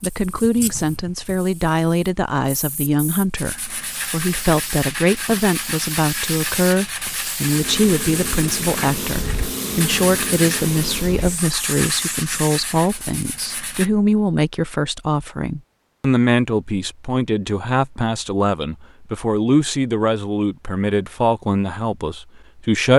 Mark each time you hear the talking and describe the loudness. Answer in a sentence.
You can hear the talking from 0.0 to 22.9 s, at a steady volume.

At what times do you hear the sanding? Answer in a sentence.
You can hear the sanding from 3.4 to 13.9 s.